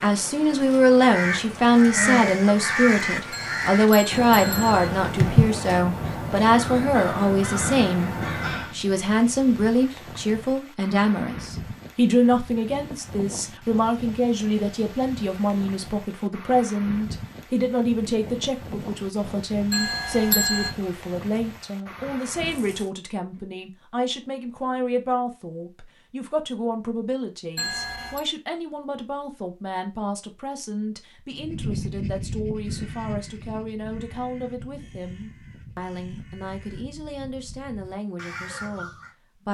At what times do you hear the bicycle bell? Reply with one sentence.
You can hear the bicycle bell from 3.3 to 4.9 s, from 19.7 to 20.7 s and from 27.6 to 28.2 s.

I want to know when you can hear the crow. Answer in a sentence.
The crow can be heard from 1.0 to 8.8 s and from 31.4 to 39.1 s.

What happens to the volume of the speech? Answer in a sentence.
The volume of the speech goes down.